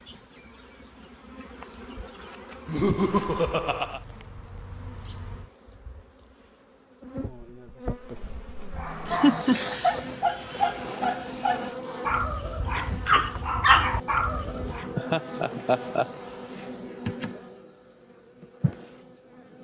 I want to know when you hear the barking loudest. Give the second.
14 s.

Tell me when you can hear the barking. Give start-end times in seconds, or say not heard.
8.7-14.8.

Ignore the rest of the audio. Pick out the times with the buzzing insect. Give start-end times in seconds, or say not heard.
0.0-19.5.